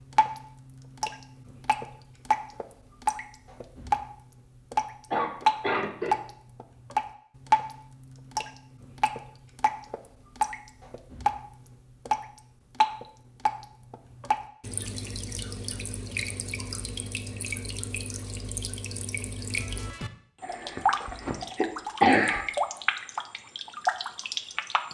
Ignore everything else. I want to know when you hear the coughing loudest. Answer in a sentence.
The loudest moment of the coughing is at 22 seconds.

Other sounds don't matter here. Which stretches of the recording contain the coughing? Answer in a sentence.
The coughing can be heard from 5.1 to 6.2 s and from 20.4 to 22.4 s.